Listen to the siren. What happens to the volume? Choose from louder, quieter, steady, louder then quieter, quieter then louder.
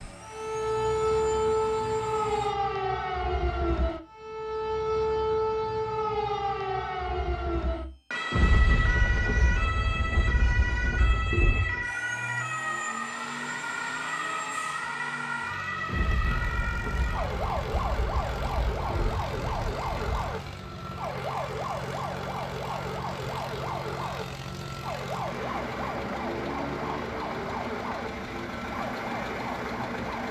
quieter.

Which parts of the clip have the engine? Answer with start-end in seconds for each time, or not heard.
0.0-2.5, 11.8-30.2.